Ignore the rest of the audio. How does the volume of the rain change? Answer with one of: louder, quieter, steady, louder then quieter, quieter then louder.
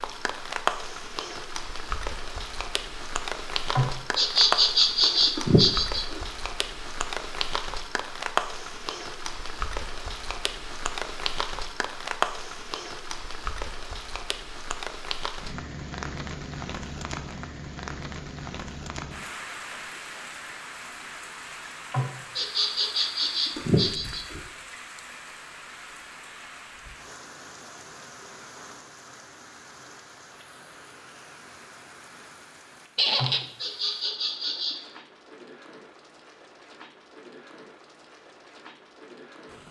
quieter.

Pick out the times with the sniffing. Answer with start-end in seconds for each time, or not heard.
3.8-6.2, 21.9-24.4, 33.1-34.8.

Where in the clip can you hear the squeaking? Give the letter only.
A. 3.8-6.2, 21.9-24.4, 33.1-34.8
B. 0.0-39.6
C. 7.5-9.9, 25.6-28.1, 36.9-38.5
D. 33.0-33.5
D.